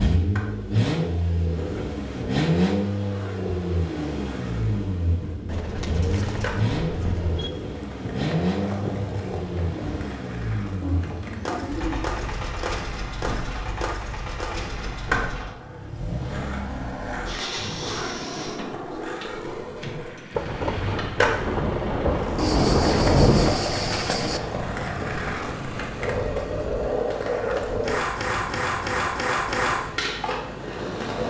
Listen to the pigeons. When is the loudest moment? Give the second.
23 s.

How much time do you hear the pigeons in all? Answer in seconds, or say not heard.
6 s.